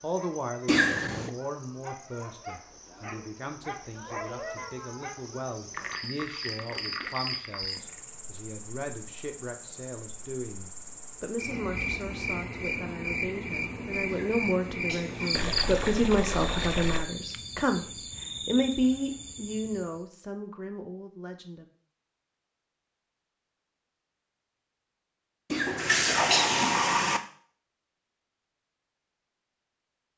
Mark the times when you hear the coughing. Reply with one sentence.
The coughing can be heard from 0.7 to 1.3 s, from 14.1 to 15.4 s and from 25.5 to 26.9 s.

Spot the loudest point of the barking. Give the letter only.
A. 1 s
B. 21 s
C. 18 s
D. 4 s
D.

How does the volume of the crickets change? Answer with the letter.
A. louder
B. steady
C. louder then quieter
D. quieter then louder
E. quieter
C.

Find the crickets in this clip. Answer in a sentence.
The crickets can be heard from 0.0 to 20.0 s.